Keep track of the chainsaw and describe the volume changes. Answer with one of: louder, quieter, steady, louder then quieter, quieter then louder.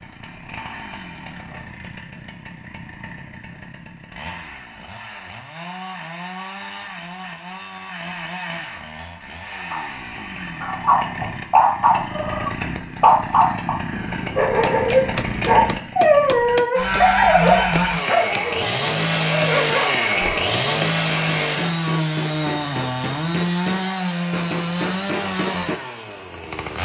louder.